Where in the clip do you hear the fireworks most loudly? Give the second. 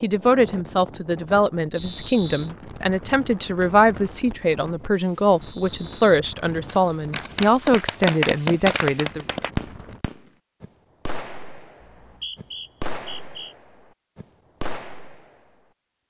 8 s.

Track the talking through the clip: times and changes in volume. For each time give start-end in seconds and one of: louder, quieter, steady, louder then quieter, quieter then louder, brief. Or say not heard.
0.0-9.2 steady.